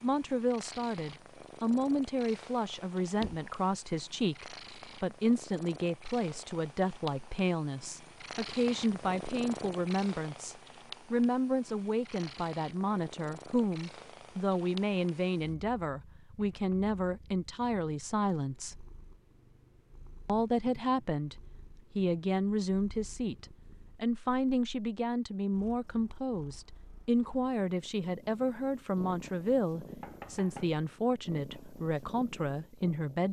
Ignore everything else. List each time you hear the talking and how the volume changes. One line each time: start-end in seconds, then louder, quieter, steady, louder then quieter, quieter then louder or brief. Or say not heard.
0.0-18.9 steady
20.2-21.4 brief
21.9-33.2 steady.